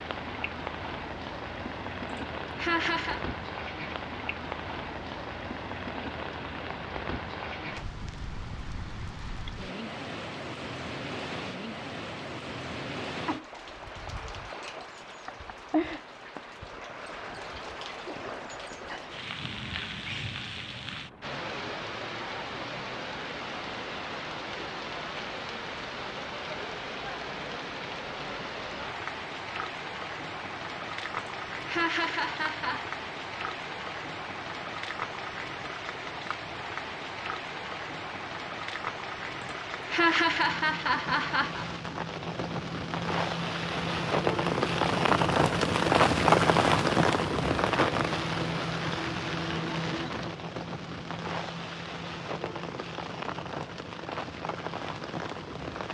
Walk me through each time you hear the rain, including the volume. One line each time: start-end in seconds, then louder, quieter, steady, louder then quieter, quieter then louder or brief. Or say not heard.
0.0-55.8 louder.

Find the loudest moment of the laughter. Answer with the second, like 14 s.
40 s.